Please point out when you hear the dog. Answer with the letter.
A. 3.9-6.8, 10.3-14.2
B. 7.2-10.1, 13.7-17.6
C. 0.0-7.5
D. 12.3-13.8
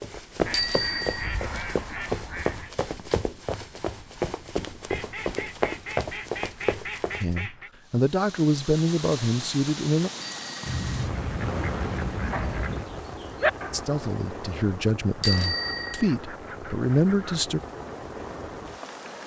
D.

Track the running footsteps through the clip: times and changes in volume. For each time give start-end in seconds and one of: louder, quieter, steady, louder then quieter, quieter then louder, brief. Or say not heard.
0.0-7.5 steady.